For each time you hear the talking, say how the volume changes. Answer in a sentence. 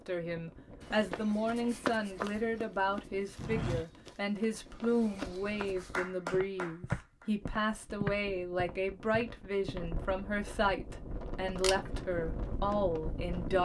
You can hear the talking from 0.1 to 13.6 s, at a steady volume.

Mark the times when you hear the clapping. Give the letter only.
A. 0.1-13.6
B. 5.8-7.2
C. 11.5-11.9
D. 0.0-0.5
B.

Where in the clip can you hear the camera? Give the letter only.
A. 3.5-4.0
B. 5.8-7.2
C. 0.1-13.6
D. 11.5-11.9
D.